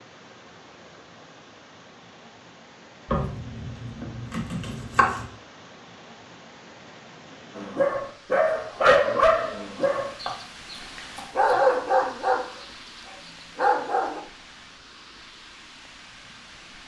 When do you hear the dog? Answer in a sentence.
You can hear the dog from 7.5 to 14.2 s.